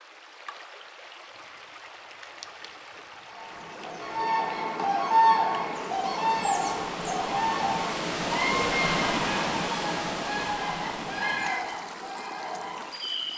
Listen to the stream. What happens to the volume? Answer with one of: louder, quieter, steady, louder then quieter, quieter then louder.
louder then quieter.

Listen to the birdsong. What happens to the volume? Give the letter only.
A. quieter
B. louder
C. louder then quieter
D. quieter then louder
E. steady
A.